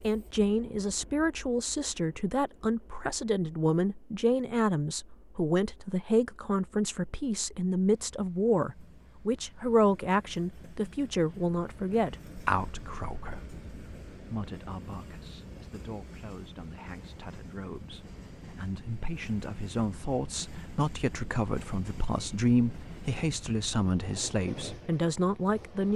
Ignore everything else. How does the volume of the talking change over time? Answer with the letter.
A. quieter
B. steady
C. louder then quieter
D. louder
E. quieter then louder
E.